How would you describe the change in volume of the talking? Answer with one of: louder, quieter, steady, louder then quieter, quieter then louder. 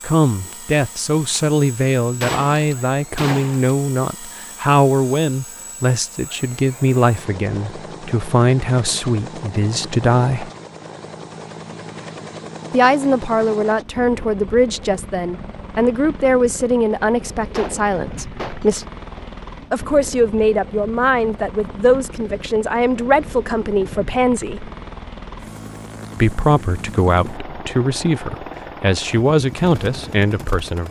steady.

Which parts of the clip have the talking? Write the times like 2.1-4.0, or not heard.
0.0-10.5, 12.7-18.9, 19.7-24.7, 26.1-30.8.